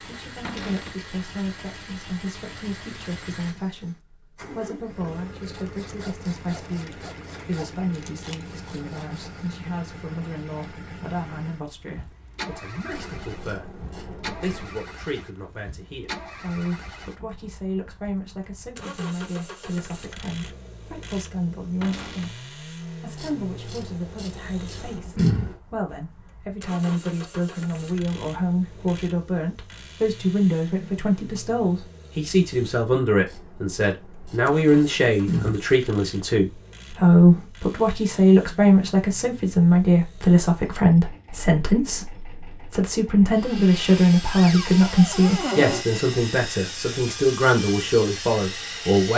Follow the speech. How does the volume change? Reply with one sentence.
The volume of the speech goes up.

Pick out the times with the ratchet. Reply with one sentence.
The ratchet can be heard from 12.9 to 14.8 s, from 23.1 to 25.6 s and from 33.2 to 35.8 s.